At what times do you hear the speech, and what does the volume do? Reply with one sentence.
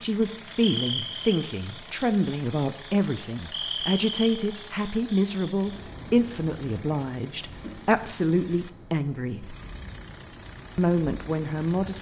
You can hear the speech from 0.0 to 9.6 s, at a steady volume; and briefly from 10.8 to 11.9 s.